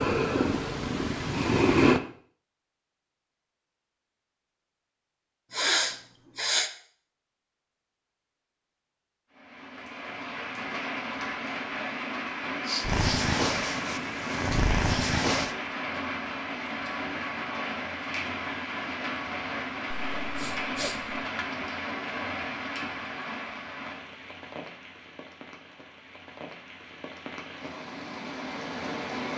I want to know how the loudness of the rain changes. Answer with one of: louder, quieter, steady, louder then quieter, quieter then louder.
quieter.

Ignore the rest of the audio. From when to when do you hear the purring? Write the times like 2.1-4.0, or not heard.
0.0-2.0, 12.8-15.6.